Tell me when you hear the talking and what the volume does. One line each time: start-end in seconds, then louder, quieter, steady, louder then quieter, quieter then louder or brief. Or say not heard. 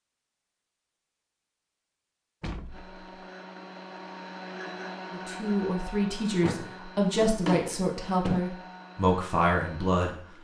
5.1-10.2 steady.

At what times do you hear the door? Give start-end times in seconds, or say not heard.
2.4-3.0, 6.4-8.4.